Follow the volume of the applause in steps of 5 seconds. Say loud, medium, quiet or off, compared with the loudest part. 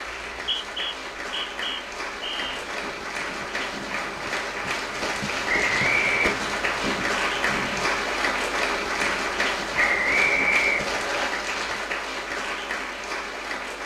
medium, loud, loud.